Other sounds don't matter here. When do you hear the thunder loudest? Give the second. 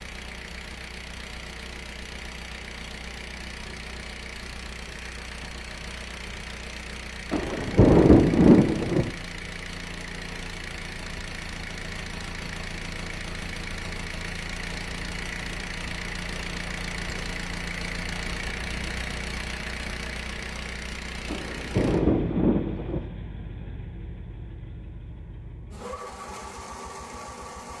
8 s.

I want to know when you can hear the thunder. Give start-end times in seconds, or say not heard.
7.3-9.1, 21.2-23.1.